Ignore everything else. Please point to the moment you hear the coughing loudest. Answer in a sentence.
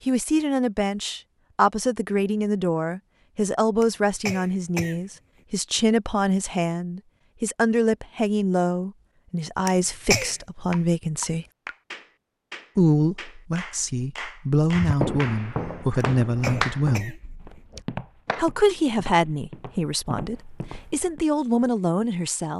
The loudest moment of the coughing is at 10 seconds.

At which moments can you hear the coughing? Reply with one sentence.
You can hear the coughing from 3.8 to 5.0 s, from 9.7 to 10.3 s and from 16.0 to 17.1 s.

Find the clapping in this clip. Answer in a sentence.
The clapping can be heard from 10.7 to 18.4 s.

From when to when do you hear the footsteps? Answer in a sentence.
The footsteps can be heard from 14.7 to 21.2 s.